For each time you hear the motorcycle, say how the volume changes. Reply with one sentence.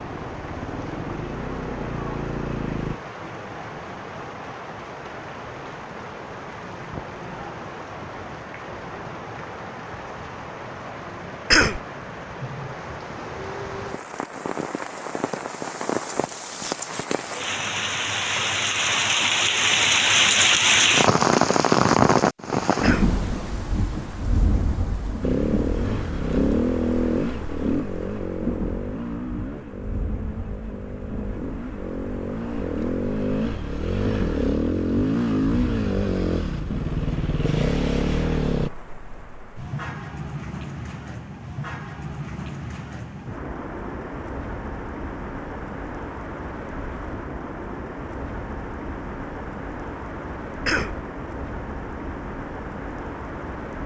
You can hear the motorcycle briefly from 0.1 to 3.0 s; and from 25.2 to 38.7 s, getting quieter then louder.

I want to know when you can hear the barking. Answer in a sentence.
The barking can't be heard in this clip.